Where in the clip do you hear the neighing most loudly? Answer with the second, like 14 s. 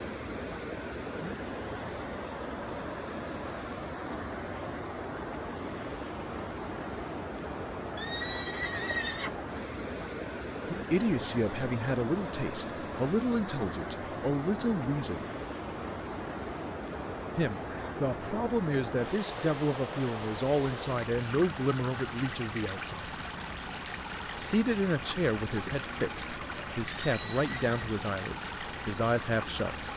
9 s.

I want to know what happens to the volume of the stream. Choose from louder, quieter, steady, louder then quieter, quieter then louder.
steady.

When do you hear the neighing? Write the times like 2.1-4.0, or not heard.
8.0-9.3, 26.9-27.9.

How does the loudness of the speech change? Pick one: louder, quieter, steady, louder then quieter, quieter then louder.
steady.